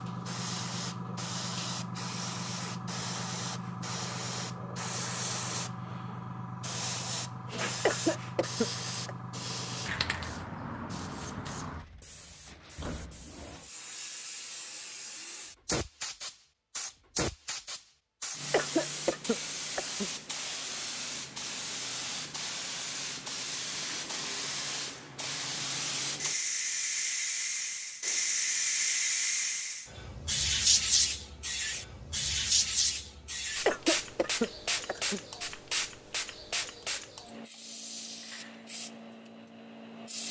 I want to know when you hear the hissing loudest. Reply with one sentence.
The loudest moment of the hissing is at 31 seconds.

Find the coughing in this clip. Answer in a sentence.
The coughing can be heard from 7.8 to 9.2 s, from 18.5 to 20.1 s and from 33.6 to 35.2 s.